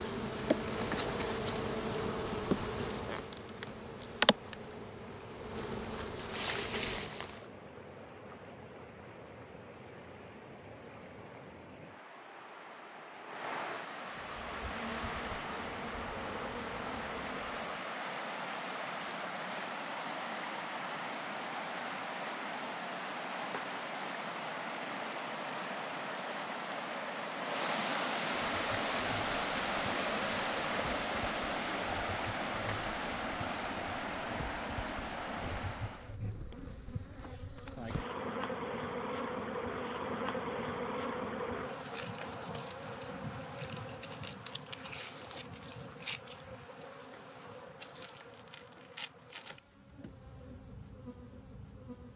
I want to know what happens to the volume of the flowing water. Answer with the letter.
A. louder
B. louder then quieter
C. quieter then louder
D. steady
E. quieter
A.